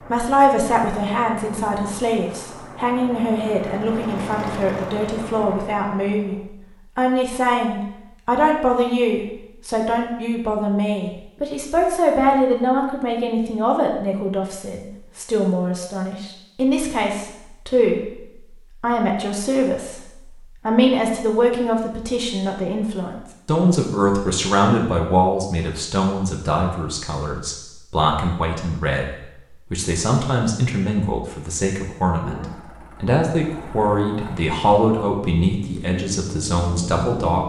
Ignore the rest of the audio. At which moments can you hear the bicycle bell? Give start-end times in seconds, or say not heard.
not heard.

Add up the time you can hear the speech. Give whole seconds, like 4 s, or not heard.
37 s.